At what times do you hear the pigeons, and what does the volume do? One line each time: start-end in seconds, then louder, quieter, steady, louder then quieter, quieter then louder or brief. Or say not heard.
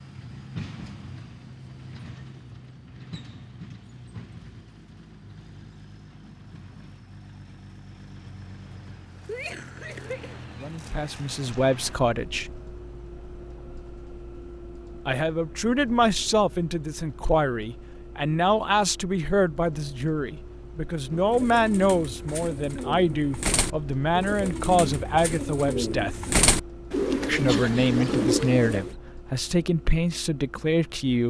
21.1-28.9 louder.